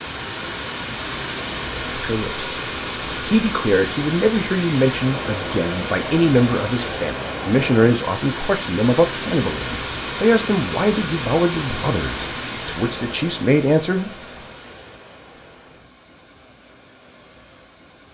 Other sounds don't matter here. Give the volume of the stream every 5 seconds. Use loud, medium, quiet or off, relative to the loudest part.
loud, loud, loud, quiet.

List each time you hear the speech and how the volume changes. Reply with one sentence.
You can hear the speech from 1.9 to 14.2 s, at a steady volume.